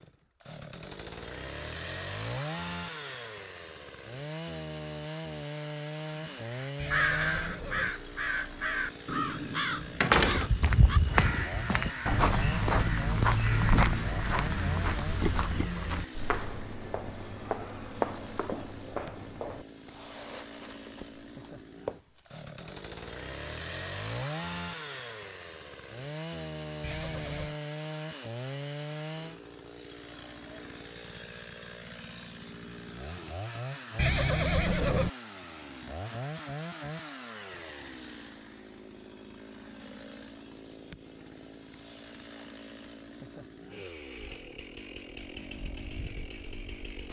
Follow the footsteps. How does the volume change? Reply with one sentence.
The loudness of the footsteps goes down.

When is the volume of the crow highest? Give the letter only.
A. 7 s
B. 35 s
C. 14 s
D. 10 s
A.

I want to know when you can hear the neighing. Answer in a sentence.
You can hear the neighing from 6.8 to 7.9 s, from 26.8 to 27.6 s and from 34.0 to 35.1 s.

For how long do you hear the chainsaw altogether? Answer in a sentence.
The chainsaw can be heard for 47 seconds in total.